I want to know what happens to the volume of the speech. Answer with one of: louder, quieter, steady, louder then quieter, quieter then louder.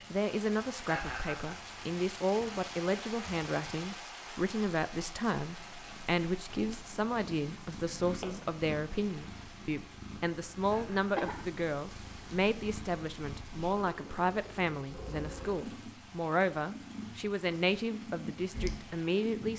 steady.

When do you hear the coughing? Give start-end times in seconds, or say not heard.
10.7-11.4.